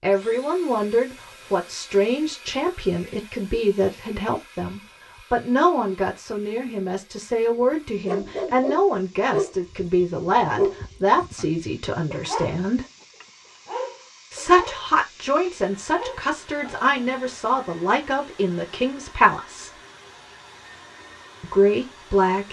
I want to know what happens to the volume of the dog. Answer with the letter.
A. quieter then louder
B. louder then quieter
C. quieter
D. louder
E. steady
C.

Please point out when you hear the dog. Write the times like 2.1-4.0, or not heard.
8.1-16.9.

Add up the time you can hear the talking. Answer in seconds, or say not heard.
19 s.